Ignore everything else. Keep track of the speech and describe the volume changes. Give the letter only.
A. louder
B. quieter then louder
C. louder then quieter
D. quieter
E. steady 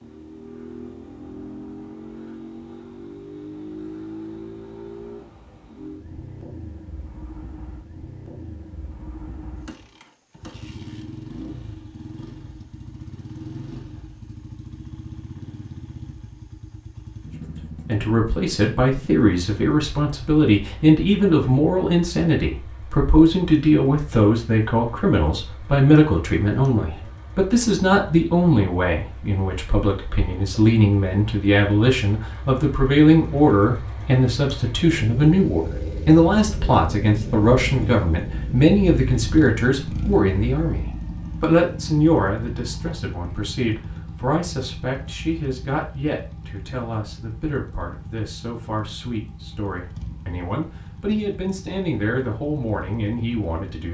D.